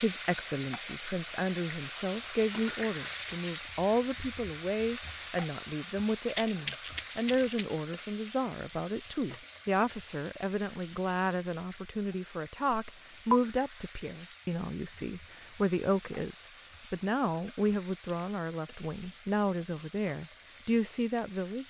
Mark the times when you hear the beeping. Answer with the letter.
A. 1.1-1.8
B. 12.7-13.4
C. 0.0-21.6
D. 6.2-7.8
B.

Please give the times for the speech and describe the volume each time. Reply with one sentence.
The speech can be heard from 0.0 to 21.6 s, at a steady volume.